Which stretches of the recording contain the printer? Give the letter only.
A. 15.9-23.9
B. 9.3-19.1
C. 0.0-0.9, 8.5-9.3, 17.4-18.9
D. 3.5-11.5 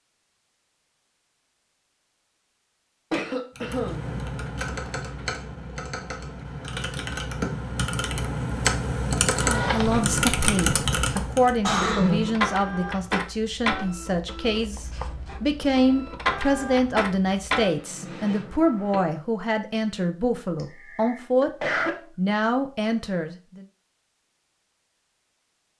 B.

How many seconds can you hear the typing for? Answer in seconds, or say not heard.
8 s.